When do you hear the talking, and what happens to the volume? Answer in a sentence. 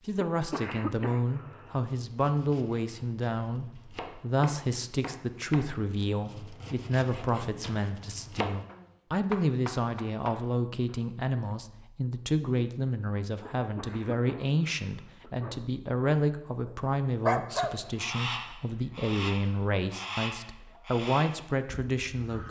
You can hear the talking from 0.1 to 22.4 s, at a steady volume.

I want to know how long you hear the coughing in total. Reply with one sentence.
You can hear the coughing for 4 seconds altogether.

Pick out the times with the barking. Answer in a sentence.
The barking can be heard from 16.6 to 17.8 s.